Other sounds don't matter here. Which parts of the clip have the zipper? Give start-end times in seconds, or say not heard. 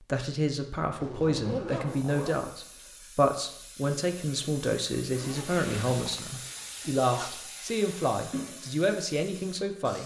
1.0-2.5, 5.1-7.5.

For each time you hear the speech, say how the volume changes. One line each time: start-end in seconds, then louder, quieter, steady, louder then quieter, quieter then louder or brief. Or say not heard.
0.0-10.0 steady.